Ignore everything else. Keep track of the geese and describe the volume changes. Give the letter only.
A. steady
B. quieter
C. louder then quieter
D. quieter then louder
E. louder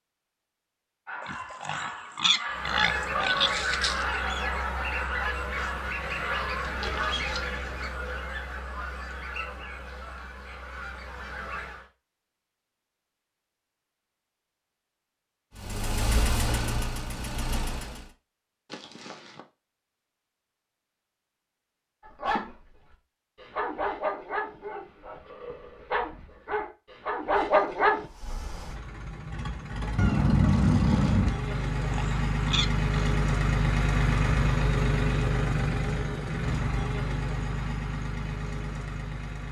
B.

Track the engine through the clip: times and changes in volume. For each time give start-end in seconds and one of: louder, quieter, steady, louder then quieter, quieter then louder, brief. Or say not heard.
15.6-18.1 brief
28.1-39.4 louder then quieter.